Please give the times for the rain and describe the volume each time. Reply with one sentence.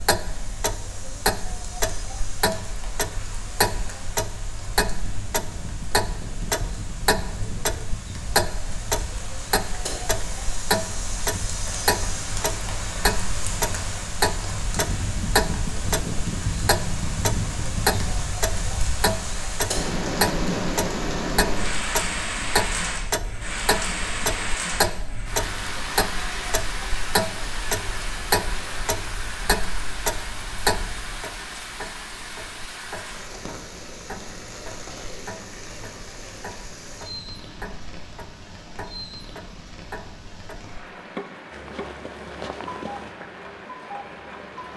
You can hear the rain from 0.0 to 44.7 s, getting louder then quieter.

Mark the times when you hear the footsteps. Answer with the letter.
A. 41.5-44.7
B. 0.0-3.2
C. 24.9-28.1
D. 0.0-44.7
A.